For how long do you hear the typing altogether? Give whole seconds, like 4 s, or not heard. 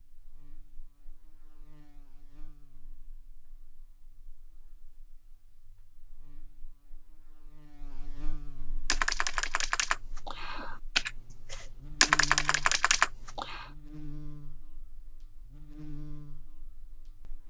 5 s.